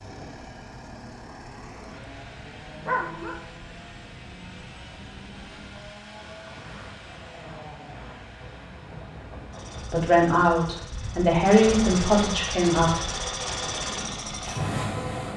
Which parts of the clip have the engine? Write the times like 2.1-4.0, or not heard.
0.0-15.3.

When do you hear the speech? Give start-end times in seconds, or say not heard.
9.9-13.0.